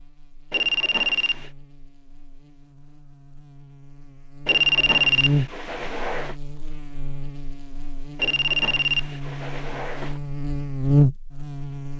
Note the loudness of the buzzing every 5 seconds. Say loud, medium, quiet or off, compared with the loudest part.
quiet, medium, loud.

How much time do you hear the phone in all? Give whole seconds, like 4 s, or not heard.
5 s.